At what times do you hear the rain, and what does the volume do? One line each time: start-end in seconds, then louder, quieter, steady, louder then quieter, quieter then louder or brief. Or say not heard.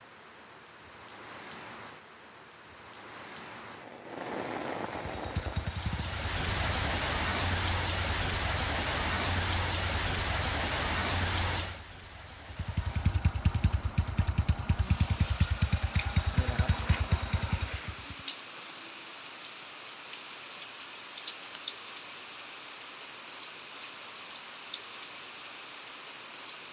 0.0-26.6 louder then quieter.